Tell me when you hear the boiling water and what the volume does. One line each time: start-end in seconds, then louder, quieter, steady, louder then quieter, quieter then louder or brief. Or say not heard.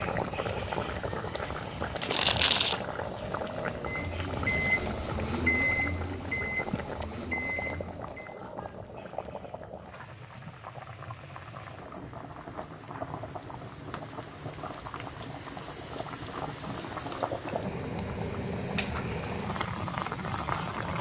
0.0-20.9 quieter then louder.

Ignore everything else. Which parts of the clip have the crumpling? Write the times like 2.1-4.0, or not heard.
2.0-2.8.